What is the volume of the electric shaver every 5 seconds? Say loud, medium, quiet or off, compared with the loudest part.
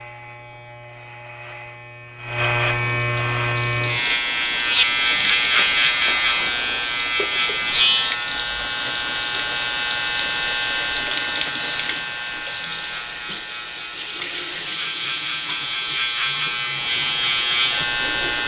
loud, loud, medium, loud.